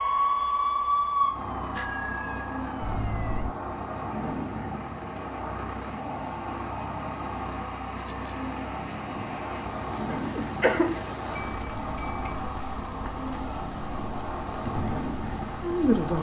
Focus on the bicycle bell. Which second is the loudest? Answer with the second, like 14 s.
2 s.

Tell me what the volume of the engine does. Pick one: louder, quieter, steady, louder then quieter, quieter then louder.
steady.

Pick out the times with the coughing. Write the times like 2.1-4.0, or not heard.
10.2-11.0.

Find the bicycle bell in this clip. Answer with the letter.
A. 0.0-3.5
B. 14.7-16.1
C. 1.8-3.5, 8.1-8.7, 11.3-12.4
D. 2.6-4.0
C.